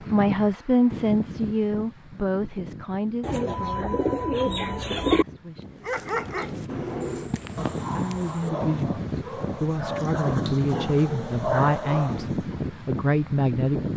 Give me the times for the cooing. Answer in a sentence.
The cooing can be heard from 3.2 to 5.2 s and from 7.0 to 8.5 s.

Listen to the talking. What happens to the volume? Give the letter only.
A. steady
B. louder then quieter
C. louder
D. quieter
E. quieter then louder
E.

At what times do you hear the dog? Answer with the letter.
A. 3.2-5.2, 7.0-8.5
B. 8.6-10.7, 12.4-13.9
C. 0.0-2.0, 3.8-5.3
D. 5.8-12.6
D.